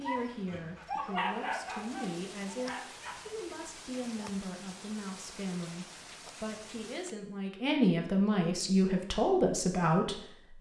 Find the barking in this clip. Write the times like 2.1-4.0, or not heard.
0.0-3.1.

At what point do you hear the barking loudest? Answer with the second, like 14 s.
1 s.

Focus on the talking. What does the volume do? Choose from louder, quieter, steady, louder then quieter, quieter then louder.
louder.